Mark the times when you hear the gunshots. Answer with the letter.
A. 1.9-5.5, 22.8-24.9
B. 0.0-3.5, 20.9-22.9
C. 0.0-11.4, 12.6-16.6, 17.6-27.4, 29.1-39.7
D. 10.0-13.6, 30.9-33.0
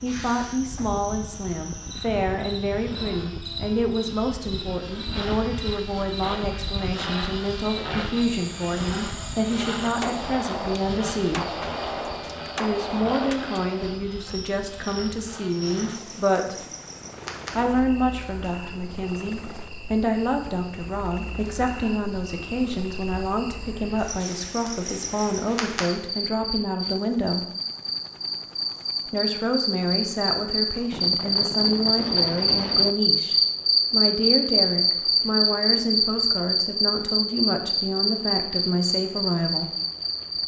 D.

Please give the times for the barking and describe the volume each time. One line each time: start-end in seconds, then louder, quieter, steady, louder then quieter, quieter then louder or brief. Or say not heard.
not heard.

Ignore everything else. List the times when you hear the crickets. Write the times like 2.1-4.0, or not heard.
0.0-40.4.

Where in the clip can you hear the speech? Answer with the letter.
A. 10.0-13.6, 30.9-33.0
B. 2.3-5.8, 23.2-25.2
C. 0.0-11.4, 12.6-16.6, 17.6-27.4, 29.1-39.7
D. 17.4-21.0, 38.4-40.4
C.